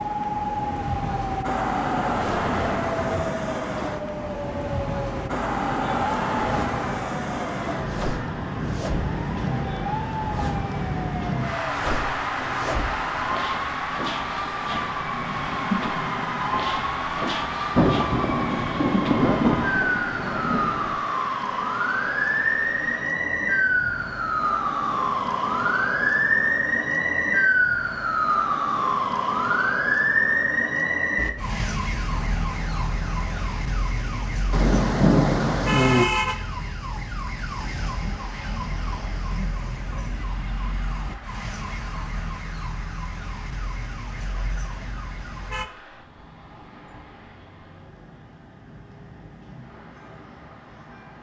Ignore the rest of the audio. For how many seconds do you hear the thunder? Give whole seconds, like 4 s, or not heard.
6 s.